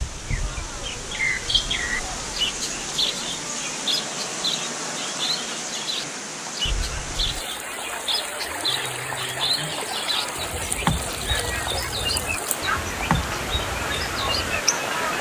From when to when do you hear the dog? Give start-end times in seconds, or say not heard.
not heard.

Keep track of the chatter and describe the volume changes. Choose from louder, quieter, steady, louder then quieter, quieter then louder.
louder.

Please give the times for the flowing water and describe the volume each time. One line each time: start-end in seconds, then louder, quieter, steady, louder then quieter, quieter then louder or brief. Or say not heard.
0.0-15.1 steady.